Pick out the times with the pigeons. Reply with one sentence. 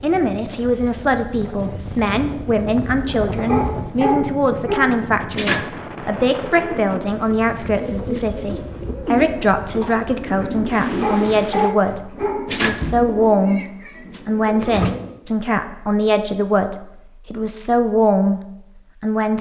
The pigeons can be heard from 6.5 to 15.1 s.